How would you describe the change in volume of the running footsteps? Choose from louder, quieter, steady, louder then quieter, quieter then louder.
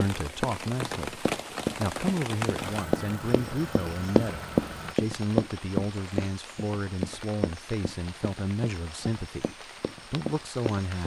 louder then quieter.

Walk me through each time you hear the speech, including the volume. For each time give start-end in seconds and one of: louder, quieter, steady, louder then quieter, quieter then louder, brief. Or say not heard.
0.0-11.0 steady.